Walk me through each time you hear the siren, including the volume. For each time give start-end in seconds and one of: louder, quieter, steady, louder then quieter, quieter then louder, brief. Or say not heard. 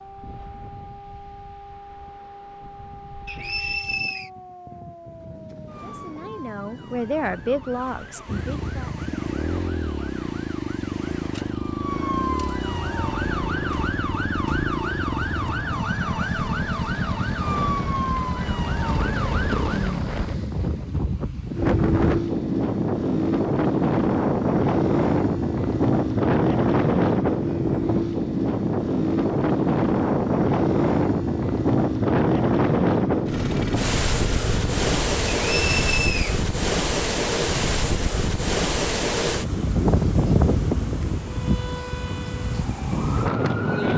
0.0-19.9 louder
41.2-43.9 brief.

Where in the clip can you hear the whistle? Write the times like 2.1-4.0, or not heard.
3.2-4.3, 35.5-36.4.